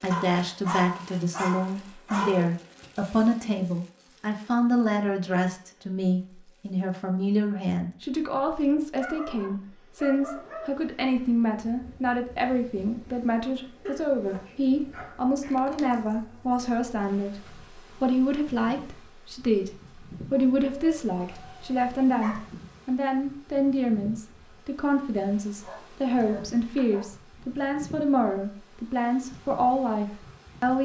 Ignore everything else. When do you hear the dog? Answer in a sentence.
The dog can be heard from 0.1 to 2.5 s, from 8.9 to 10.8 s, from 13.8 to 15.6 s, from 20.3 to 22.4 s and from 25.6 to 27.1 s.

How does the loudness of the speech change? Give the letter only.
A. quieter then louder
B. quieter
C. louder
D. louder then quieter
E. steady
E.